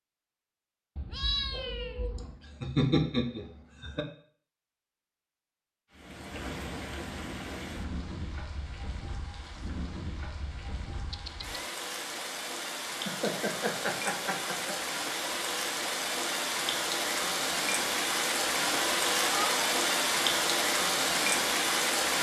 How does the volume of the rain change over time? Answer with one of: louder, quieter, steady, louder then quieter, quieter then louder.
louder.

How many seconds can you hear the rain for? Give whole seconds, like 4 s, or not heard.
16 s.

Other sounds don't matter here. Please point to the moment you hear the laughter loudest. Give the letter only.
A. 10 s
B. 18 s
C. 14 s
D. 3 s
D.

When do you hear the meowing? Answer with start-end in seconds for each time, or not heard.
0.9-2.4, 11.1-11.7, 19.1-19.6.